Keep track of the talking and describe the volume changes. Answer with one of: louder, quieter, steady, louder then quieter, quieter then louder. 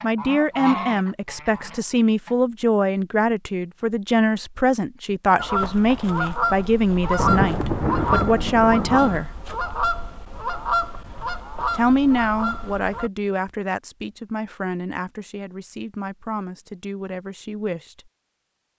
quieter.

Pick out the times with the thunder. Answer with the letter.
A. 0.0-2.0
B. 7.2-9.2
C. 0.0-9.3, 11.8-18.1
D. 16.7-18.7
B.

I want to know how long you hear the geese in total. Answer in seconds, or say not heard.
10 s.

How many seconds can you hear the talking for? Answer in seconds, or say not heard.
16 s.